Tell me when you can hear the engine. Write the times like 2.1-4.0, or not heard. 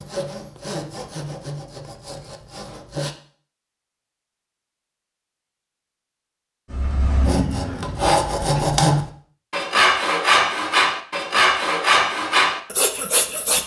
6.7-8.8.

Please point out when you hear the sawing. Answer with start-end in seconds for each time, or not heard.
0.0-3.1, 7.2-13.6.